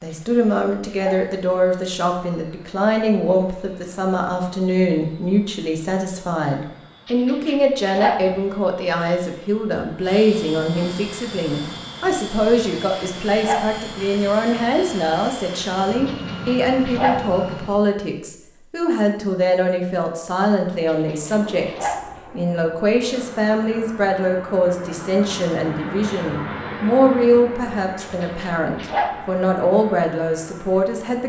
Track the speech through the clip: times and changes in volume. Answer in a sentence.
The speech can be heard from 0.0 to 31.2 s, at a steady volume.